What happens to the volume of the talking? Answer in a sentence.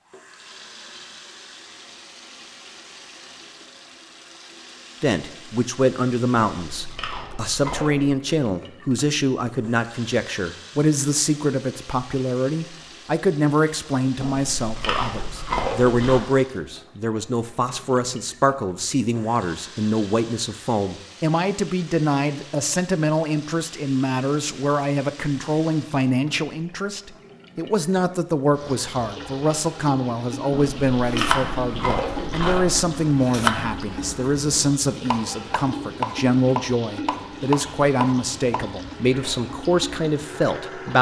The volume of the talking stays about the same.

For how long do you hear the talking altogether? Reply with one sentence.
You can hear the talking for 36 seconds altogether.